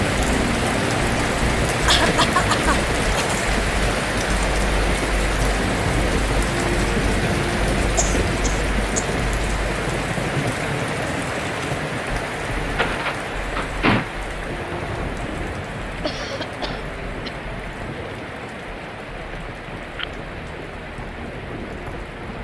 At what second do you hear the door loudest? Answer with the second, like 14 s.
14 s.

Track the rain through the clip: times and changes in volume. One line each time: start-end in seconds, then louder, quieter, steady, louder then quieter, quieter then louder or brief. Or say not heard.
0.0-22.3 quieter.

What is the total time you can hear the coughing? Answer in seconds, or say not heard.
4 s.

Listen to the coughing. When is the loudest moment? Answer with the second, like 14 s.
2 s.